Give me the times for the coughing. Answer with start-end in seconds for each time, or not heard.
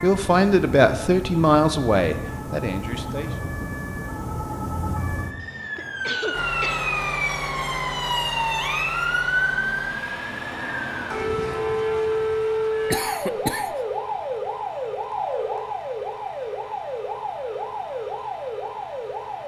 5.4-6.9, 12.9-13.8.